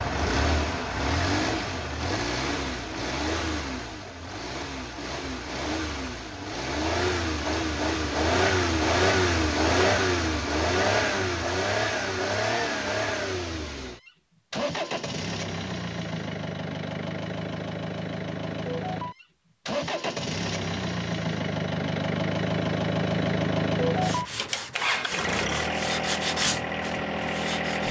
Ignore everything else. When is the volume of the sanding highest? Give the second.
26 s.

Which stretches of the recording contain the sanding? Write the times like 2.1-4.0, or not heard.
23.9-27.8.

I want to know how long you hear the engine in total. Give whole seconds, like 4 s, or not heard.
28 s.